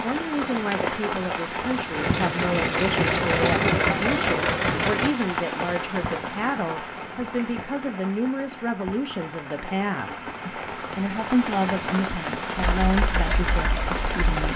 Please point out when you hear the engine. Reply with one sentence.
You can hear the engine from 1.9 to 5.2 s and from 12.6 to 14.4 s.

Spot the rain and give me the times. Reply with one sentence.
The rain can be heard from 0.0 to 14.5 s.